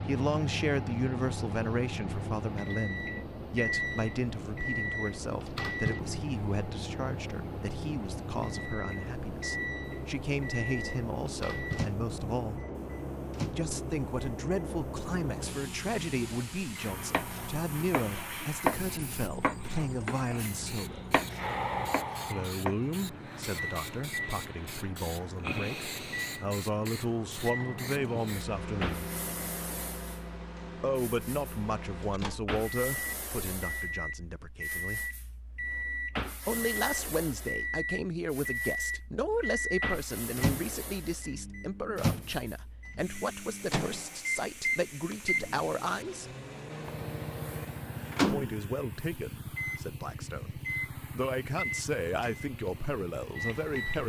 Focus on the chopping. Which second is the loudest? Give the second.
19 s.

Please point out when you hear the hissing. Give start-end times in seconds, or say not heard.
0.0-54.0.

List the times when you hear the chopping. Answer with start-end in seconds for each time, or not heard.
17.1-22.8.